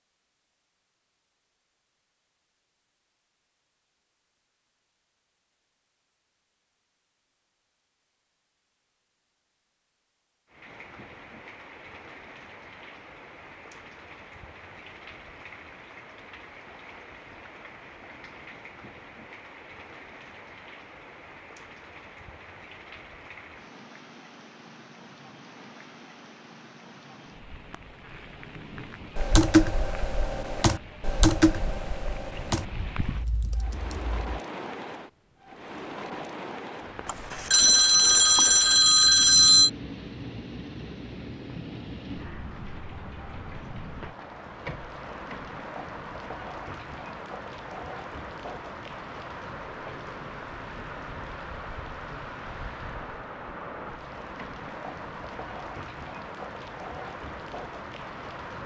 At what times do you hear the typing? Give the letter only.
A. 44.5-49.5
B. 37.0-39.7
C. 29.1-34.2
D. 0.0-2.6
C.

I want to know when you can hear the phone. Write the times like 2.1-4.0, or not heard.
37.0-39.7.